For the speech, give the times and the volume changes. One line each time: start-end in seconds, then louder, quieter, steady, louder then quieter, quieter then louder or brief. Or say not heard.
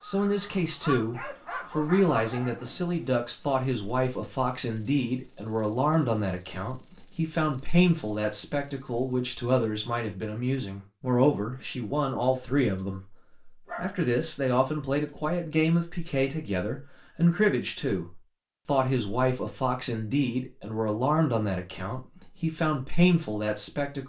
0.0-24.0 steady.